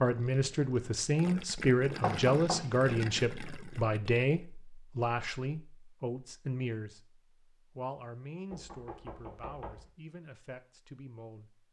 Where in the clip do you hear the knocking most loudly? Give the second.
2 s.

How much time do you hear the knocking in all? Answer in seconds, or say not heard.
2 s.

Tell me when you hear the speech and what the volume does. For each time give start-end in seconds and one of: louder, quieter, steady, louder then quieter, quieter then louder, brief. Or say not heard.
0.0-11.6 quieter.